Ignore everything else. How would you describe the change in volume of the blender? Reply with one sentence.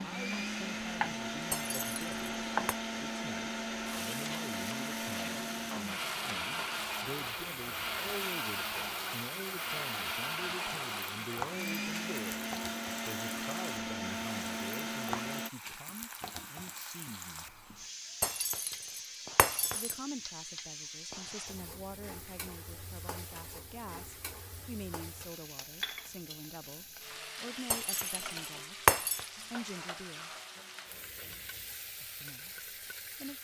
The volume of the blender stays about the same.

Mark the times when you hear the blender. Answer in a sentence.
The blender can be heard from 0.0 to 15.5 s.